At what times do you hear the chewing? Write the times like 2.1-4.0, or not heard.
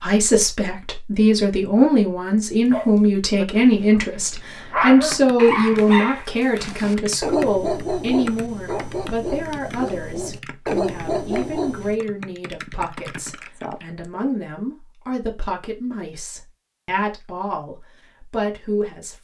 not heard.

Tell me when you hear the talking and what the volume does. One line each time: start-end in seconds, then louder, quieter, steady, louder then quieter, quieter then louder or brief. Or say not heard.
0.0-19.1 quieter.